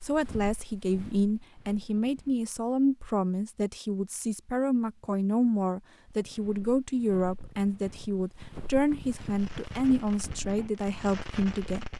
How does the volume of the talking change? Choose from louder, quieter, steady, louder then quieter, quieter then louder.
steady.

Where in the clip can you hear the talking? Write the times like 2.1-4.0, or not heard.
0.0-11.8.